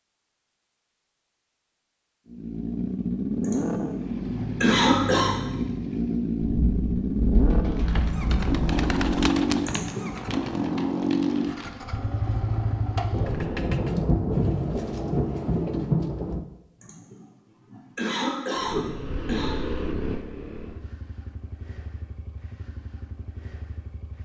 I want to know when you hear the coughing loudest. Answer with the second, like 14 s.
5 s.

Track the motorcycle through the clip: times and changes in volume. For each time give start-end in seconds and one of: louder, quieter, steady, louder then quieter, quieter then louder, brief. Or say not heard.
2.2-13.6 steady
18.6-24.2 quieter.